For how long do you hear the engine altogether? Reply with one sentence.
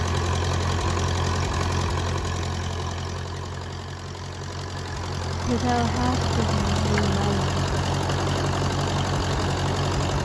The engine can be heard for 10 seconds in total.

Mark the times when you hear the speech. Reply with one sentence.
You can hear the speech from 5.4 to 7.7 s.